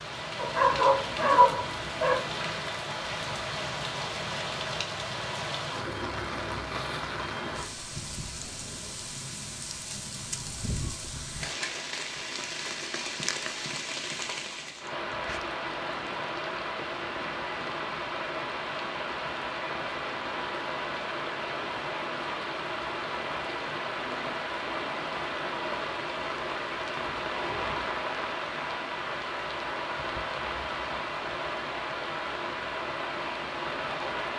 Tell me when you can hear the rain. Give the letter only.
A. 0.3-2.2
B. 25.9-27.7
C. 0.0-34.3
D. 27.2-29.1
C.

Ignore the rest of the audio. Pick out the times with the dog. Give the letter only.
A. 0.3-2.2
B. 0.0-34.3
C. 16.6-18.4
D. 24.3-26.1
A.